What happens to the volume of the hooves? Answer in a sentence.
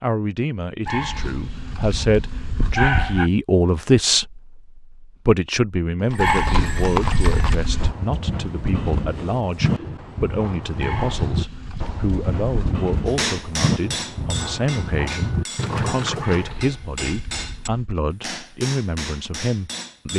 The loudness of the hooves stays about the same.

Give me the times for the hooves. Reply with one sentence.
The hooves can be heard from 6.0 to 16.6 s.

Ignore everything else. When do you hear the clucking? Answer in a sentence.
The clucking can't be heard in this clip.